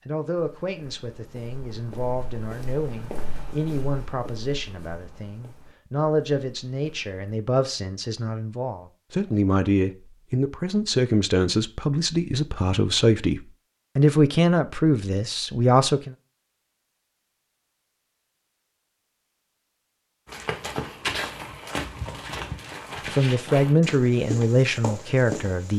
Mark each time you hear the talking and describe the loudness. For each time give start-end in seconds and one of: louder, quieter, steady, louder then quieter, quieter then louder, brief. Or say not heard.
0.1-16.1 louder
23.1-25.7 brief.